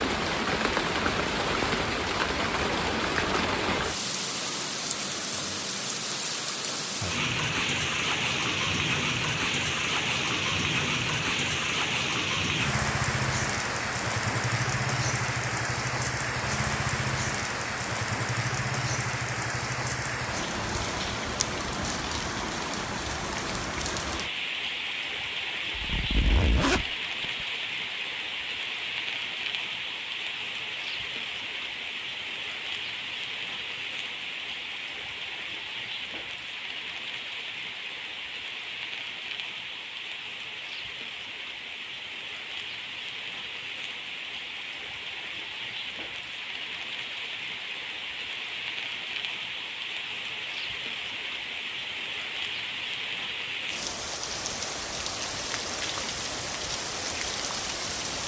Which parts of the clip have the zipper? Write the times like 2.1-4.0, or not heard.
25.8-27.4.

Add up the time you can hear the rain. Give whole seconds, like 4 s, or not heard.
58 s.